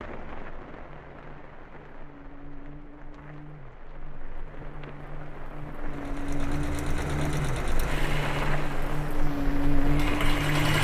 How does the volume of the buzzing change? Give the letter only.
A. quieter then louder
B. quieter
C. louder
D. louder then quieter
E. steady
C.